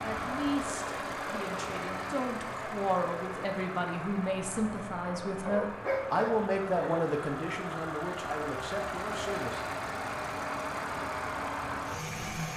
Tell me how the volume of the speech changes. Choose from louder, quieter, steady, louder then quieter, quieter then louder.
louder then quieter.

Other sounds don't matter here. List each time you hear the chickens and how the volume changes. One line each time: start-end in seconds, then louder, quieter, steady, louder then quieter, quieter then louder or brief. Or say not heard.
not heard.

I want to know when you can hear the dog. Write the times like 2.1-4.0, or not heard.
5.5-7.0.